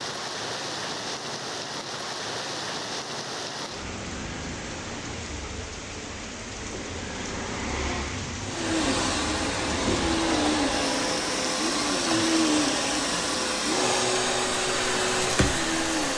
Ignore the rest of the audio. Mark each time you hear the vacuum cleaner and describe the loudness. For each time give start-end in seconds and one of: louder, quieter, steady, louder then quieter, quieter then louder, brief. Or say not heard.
8.4-16.1 steady.